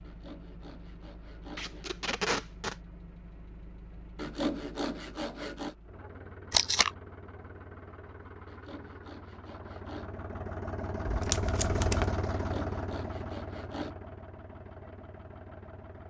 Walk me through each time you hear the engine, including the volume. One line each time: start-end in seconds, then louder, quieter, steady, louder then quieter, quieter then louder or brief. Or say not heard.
0.0-16.0 louder then quieter.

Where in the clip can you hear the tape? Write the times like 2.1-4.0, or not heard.
1.6-2.8, 6.5-6.9, 11.1-12.1.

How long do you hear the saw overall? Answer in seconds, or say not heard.
7 s.